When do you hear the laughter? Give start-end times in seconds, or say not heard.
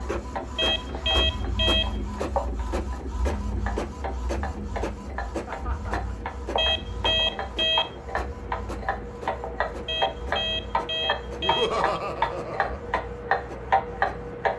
0.8-1.5, 5.5-6.0, 11.4-12.8.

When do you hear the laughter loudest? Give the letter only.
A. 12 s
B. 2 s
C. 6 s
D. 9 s
A.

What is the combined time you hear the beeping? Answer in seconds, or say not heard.
5 s.